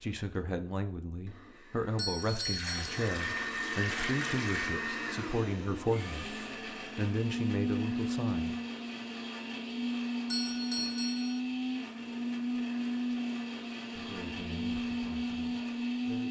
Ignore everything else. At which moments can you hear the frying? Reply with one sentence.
The frying can't be heard in this clip.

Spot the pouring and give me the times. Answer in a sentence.
You can hear the pouring from 2.2 to 4.8 s.